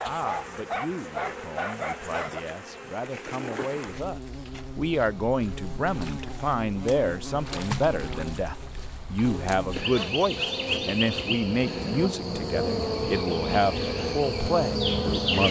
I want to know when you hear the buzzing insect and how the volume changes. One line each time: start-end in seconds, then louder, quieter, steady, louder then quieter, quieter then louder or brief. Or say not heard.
0.0-15.4 louder.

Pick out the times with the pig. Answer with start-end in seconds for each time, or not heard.
not heard.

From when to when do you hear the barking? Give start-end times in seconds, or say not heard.
0.0-2.4.